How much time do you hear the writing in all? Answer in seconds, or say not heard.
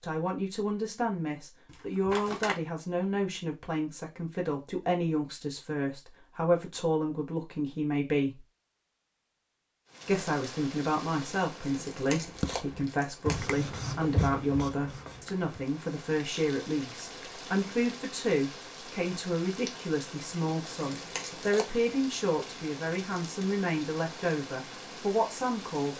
3 s.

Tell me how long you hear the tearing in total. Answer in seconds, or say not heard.
4 s.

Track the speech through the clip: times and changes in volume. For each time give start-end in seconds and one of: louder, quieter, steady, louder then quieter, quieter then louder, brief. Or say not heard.
0.0-8.4 steady
10.1-25.9 steady.